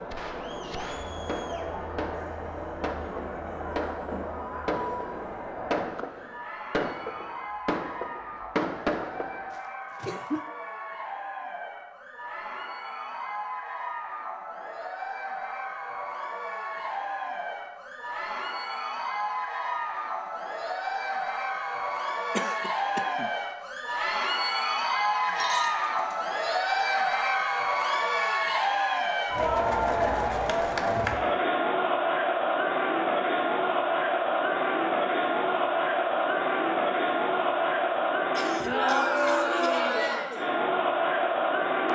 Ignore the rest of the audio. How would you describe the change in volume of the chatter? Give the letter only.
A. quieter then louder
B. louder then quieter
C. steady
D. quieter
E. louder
E.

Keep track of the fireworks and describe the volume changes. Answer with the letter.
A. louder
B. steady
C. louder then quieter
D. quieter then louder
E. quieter
A.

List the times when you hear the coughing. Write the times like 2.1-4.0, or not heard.
9.5-10.4, 22.3-23.3, 38.4-39.9.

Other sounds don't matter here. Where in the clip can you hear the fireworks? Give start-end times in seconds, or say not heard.
0.1-9.5.